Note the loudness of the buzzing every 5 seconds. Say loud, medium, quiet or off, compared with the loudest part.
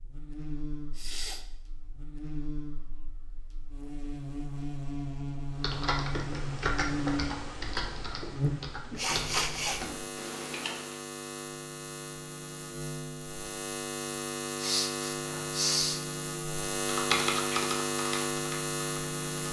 medium, loud, medium, loud.